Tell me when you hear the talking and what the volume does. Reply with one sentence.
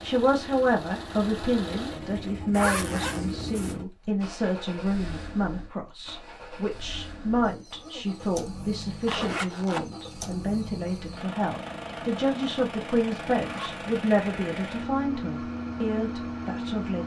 You can hear the talking from 0.0 to 17.0 s, at a steady volume.